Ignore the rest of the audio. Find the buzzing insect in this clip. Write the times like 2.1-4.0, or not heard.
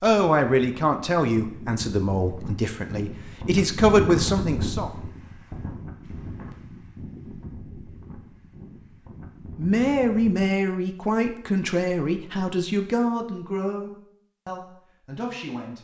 not heard.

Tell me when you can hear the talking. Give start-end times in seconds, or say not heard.
0.0-4.9, 9.6-15.7.